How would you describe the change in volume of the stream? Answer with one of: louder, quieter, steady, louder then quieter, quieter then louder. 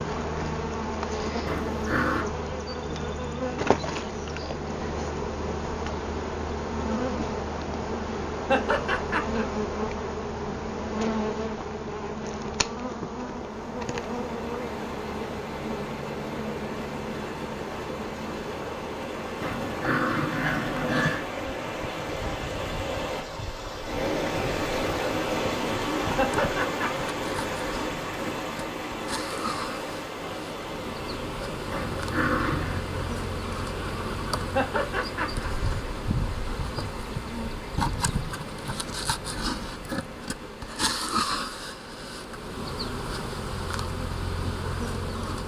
louder then quieter.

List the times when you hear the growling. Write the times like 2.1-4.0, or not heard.
1.4-2.2, 19.4-21.3, 31.7-32.8.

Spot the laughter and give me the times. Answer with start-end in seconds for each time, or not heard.
8.5-9.4, 26.1-27.1, 34.5-35.5.